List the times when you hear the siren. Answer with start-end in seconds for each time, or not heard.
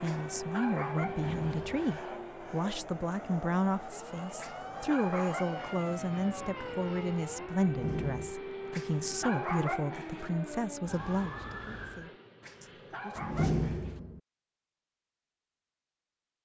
0.0-12.2.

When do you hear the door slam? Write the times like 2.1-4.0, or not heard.
1.1-2.0, 7.7-8.3, 13.2-14.2.